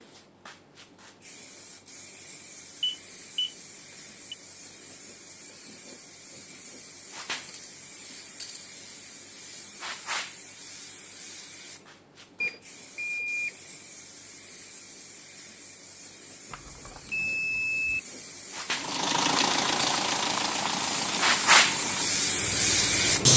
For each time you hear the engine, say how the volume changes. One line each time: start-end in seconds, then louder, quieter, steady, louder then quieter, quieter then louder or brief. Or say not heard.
18.7-23.1 quieter.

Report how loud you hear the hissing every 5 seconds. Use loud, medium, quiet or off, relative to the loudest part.
quiet, quiet, quiet, quiet, loud.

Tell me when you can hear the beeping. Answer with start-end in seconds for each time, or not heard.
2.8-3.5, 12.4-13.6, 16.5-18.0.